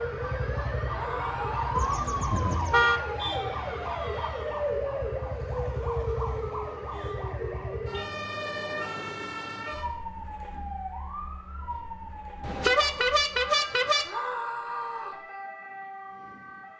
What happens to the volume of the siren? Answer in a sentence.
The loudness of the siren goes down.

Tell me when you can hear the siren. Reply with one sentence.
You can hear the siren from 0.0 to 16.7 s.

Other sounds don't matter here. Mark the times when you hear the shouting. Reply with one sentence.
The shouting can be heard from 0.9 to 1.9 s and from 14.1 to 15.2 s.